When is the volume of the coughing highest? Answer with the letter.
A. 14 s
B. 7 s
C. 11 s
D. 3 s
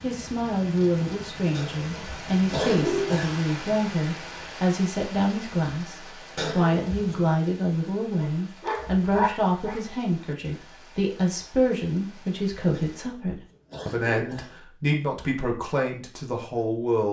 D.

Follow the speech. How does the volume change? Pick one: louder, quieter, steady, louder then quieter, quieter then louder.
steady.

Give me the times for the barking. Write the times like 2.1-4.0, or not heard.
8.1-9.8.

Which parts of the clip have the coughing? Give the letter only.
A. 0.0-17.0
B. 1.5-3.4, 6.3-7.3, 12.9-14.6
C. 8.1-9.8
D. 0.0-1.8
B.